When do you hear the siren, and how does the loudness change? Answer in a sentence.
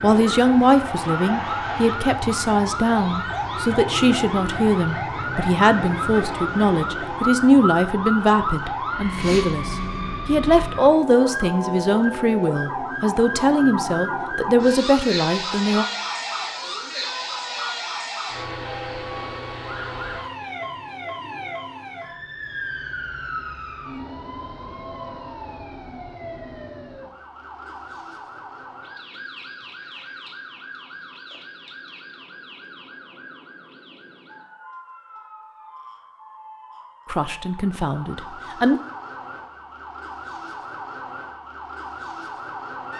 The siren can be heard from 0.0 to 42.9 s, getting quieter.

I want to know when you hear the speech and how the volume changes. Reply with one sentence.
You can hear the speech from 0.0 to 15.8 s, at a steady volume; and briefly from 37.1 to 38.8 s.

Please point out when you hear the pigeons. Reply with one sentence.
You can't hear the pigeons here.